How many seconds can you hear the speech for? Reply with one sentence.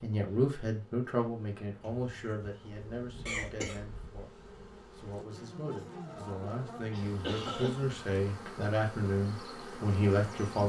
The speech can be heard for 10 seconds in total.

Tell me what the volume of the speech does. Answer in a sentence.
The loudness of the speech goes down, then up.